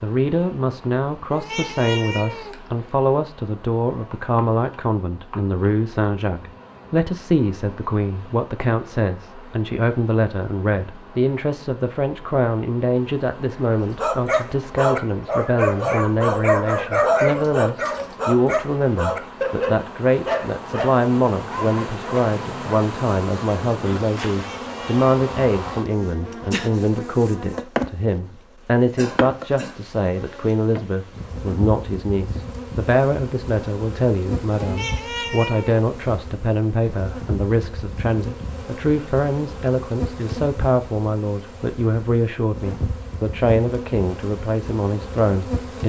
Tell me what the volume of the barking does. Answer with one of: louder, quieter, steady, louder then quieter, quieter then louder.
quieter.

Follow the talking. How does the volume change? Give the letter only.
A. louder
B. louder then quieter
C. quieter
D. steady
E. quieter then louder
D.